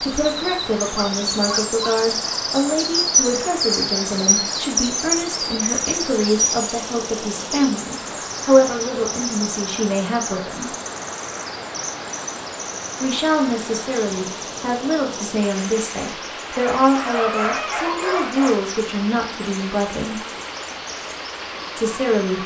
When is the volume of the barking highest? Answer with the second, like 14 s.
17 s.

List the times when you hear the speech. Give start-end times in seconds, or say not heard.
0.0-10.7, 13.0-20.2, 21.8-22.4.